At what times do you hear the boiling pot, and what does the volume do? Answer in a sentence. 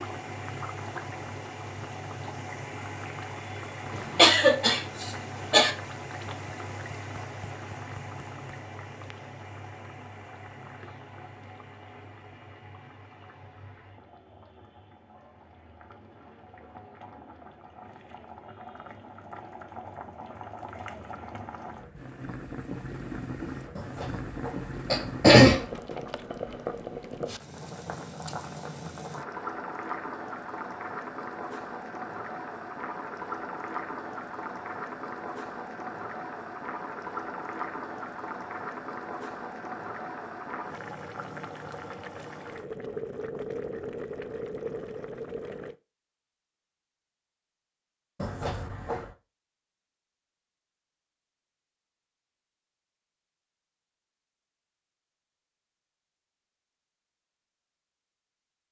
You can hear the boiling pot from 0.0 to 45.8 s, getting quieter then louder.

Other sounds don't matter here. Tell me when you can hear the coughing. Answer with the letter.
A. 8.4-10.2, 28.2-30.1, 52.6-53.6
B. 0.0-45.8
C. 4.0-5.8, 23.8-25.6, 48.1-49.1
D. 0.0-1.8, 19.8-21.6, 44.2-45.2
C.